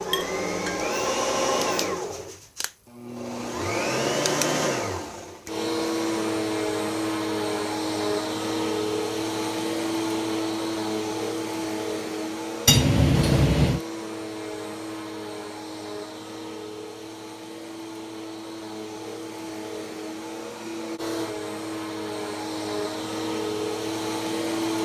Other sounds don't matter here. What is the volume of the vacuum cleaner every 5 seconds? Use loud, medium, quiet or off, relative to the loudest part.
loud, loud, loud, medium, loud.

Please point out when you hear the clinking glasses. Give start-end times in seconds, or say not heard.
0.1-0.9, 12.7-13.8.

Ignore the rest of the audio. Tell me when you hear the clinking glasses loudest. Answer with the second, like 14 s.
13 s.